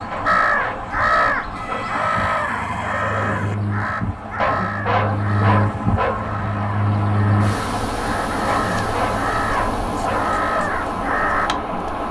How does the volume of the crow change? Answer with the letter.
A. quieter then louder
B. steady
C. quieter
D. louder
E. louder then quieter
A.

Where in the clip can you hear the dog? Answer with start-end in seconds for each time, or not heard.
0.1-2.0, 4.3-6.3, 8.4-10.3.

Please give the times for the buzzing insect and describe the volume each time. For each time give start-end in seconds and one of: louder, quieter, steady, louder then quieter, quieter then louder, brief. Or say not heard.
0.0-12.0 louder then quieter.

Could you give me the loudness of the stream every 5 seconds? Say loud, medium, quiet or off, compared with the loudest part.
medium, loud, loud.